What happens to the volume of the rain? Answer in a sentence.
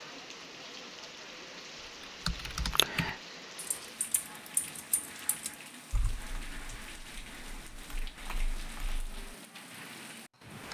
The volume of the rain stays about the same.